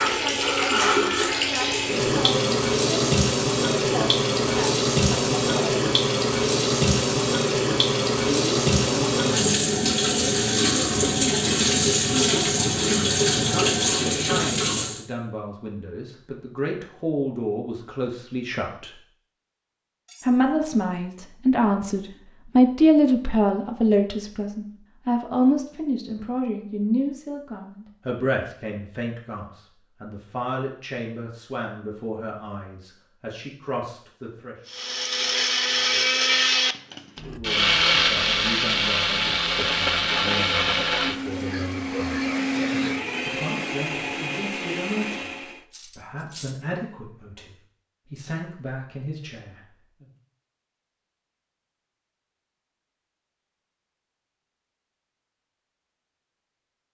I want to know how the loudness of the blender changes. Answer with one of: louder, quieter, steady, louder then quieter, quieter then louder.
quieter.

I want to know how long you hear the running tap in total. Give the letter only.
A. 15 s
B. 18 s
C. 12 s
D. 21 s
A.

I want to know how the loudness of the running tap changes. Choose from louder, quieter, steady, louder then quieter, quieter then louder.
steady.